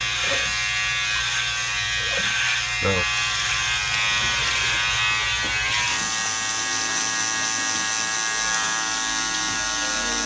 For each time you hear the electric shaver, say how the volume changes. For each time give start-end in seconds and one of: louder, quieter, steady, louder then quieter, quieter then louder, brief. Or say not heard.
0.0-10.2 steady.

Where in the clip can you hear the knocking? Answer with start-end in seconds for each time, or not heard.
not heard.